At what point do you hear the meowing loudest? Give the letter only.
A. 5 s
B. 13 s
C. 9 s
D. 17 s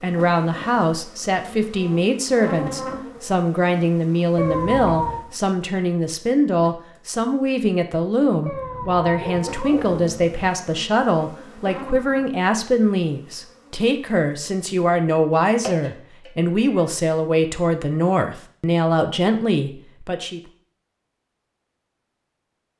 A.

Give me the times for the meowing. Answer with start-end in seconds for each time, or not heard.
4.3-5.2, 8.4-10.4, 15.6-16.8.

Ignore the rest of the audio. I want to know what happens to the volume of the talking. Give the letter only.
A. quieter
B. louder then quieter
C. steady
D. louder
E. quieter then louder
C.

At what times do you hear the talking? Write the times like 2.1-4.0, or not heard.
0.0-20.4.